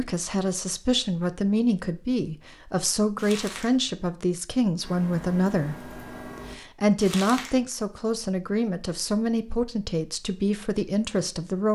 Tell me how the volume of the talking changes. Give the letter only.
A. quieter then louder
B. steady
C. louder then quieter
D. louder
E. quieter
B.